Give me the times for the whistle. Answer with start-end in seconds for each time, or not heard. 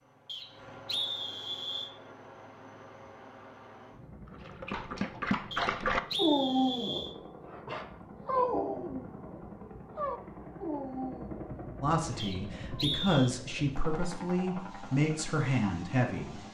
0.2-1.9, 5.5-7.2, 12.2-13.3.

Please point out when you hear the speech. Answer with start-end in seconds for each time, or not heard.
11.8-16.4.